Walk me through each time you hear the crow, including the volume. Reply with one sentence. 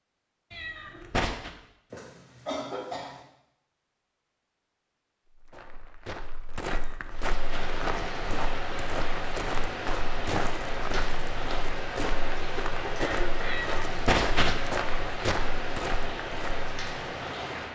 The crow can't be heard in this clip.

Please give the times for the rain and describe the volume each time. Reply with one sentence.
You can hear the rain from 7.1 to 17.7 s, at a steady volume.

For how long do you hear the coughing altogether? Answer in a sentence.
You can hear the coughing for 2 seconds altogether.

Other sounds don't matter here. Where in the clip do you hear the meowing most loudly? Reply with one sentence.
The volume of the meowing peaks at 14 seconds.